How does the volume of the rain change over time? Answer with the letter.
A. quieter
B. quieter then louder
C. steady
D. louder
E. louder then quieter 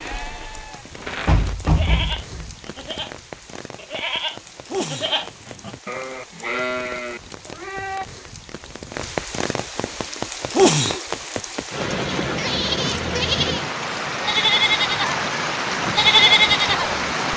D.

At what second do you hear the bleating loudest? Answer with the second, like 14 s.
16 s.